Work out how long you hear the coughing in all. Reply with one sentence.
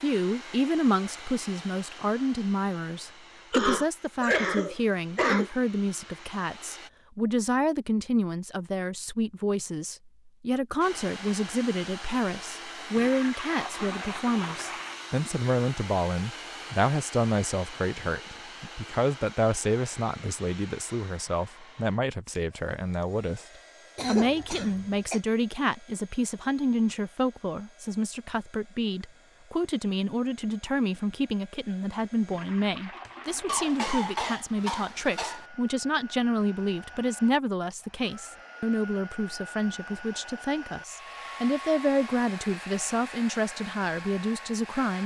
You can hear the coughing for 5 seconds altogether.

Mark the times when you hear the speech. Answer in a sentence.
The speech can be heard from 0.0 to 23.4 s and from 24.1 to 45.0 s.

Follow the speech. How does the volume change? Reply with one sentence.
The volume of the speech stays about the same.